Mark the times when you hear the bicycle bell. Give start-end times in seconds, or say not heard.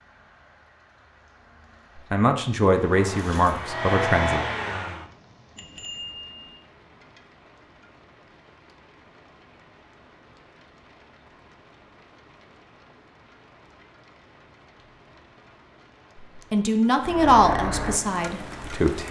5.5-6.6.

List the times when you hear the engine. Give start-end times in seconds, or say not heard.
2.7-5.0, 17.0-18.8.